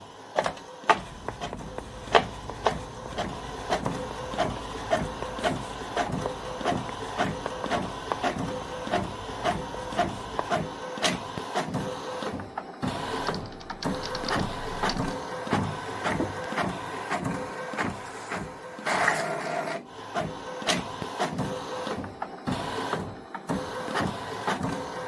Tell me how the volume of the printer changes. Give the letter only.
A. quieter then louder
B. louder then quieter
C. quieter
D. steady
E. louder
D.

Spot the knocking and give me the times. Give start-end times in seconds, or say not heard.
15.5-16.5.